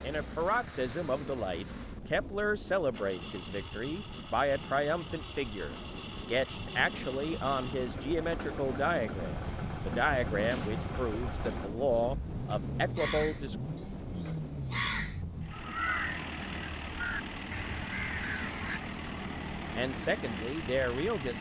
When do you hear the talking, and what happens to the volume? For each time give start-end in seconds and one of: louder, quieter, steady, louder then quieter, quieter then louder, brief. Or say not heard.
0.0-13.6 steady
19.7-21.3 brief.